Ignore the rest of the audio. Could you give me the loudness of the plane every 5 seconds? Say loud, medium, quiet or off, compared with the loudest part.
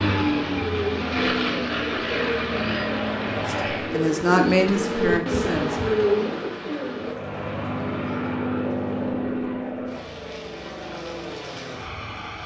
loud, loud, medium.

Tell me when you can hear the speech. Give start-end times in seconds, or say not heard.
3.4-5.8.